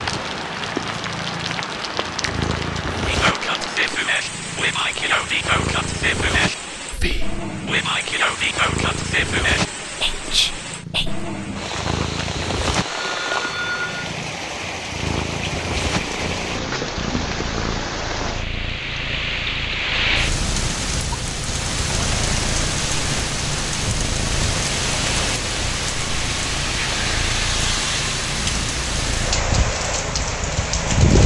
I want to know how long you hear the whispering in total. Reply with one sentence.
You can hear the whispering for 8 seconds altogether.